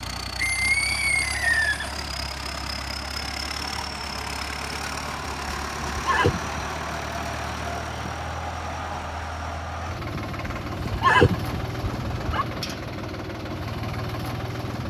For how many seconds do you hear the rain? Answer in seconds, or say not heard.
not heard.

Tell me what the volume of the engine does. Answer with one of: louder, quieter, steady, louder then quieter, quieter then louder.
steady.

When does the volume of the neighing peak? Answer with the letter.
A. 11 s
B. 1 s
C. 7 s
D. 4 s
A.